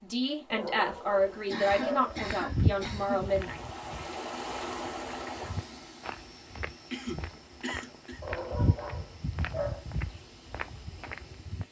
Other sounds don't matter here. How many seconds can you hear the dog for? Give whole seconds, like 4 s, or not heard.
3 s.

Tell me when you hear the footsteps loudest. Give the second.
3 s.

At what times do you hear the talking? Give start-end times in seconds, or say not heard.
0.0-3.6.